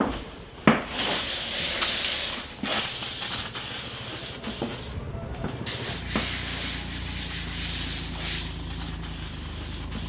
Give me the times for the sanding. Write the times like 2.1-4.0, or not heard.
1.1-2.6, 5.7-8.6.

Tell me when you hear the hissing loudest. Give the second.
1 s.